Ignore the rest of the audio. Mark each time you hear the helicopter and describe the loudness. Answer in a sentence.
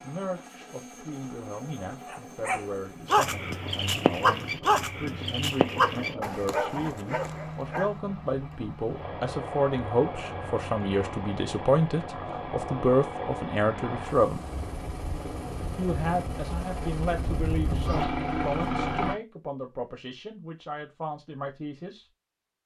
The helicopter can be heard from 0.0 to 19.1 s, getting louder.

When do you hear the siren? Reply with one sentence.
You can't hear the siren here.